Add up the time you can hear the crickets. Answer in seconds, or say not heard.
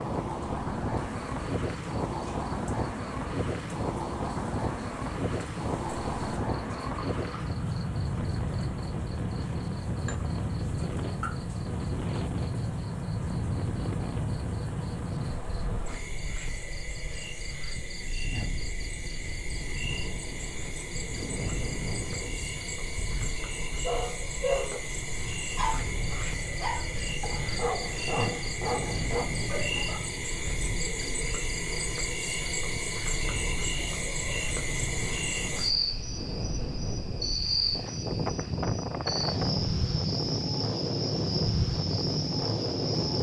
43 s.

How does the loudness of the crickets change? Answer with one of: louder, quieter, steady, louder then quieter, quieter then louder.
louder.